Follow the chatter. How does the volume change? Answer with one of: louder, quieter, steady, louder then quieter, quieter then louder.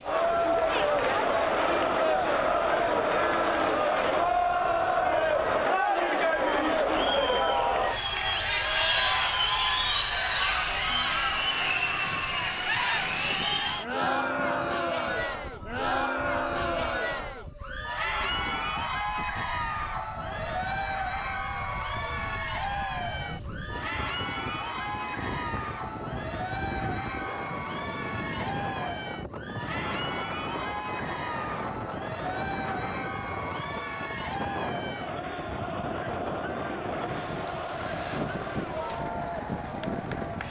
quieter.